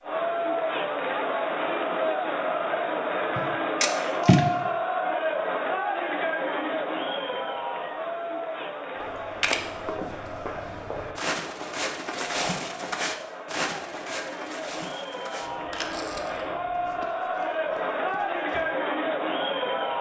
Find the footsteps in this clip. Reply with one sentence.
You can hear the footsteps from 8.9 to 18.6 s.